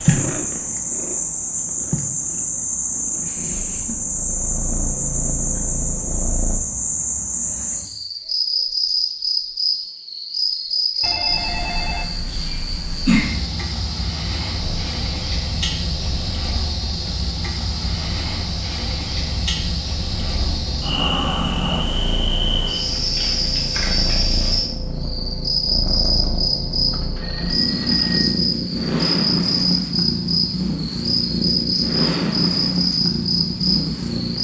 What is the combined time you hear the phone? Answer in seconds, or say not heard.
3 s.